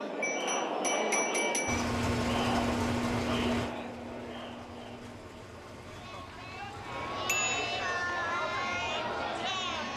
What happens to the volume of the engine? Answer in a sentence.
The volume of the engine goes down.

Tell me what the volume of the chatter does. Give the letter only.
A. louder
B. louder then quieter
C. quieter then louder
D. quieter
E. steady
C.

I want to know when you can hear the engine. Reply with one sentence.
The engine can be heard from 1.6 to 9.9 s.